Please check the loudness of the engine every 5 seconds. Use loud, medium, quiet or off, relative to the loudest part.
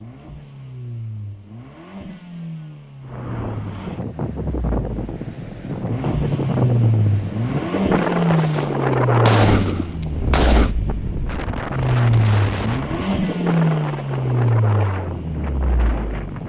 quiet, loud, loud, quiet.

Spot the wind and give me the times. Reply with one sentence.
You can hear the wind from 3.0 to 16.4 s.